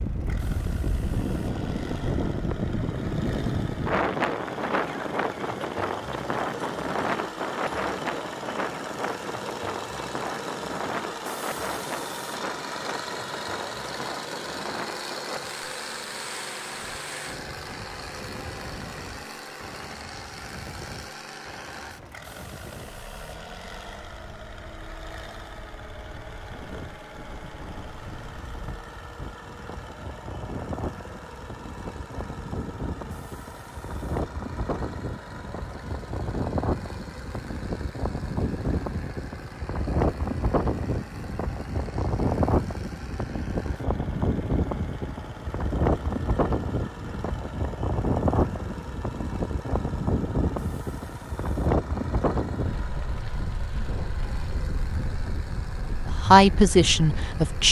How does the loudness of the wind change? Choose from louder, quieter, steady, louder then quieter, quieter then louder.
quieter then louder.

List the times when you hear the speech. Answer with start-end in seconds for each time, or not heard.
56.2-57.6.